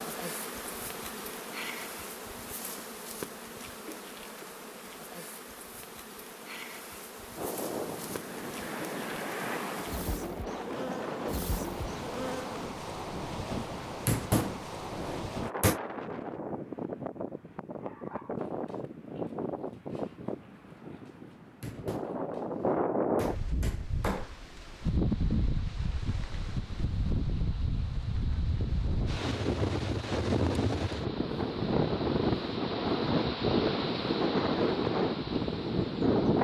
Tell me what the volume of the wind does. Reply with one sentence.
The volume of the wind goes up.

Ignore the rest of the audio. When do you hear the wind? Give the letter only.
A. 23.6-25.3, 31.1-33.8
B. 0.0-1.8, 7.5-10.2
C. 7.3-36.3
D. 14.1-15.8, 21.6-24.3
C.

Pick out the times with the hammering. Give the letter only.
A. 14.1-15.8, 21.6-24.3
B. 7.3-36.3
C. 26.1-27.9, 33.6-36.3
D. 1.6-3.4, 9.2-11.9
A.